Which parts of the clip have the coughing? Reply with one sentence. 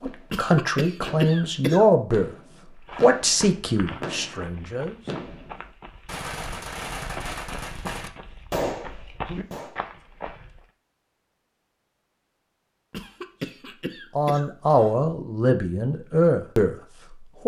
The coughing can be heard from 0.3 to 1.9 s and from 12.9 to 14.9 s.